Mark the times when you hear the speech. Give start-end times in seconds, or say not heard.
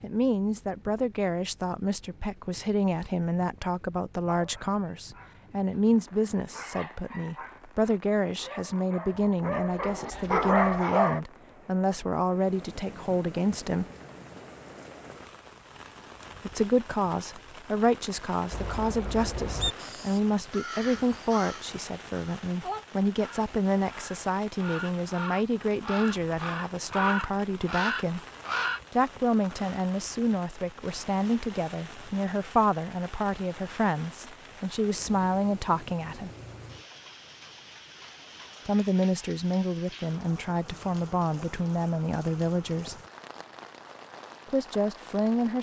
0.0-13.8, 16.4-28.2, 28.9-36.3, 38.6-43.0, 44.5-45.5.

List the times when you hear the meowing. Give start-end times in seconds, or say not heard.
not heard.